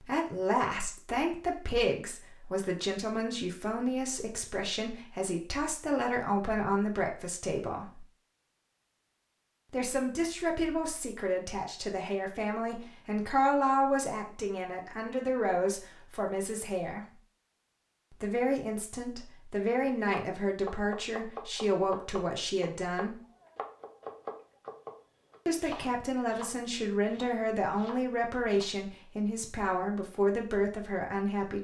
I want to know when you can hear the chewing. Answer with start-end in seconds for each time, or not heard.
not heard.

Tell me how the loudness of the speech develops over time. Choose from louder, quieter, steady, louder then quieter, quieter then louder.
steady.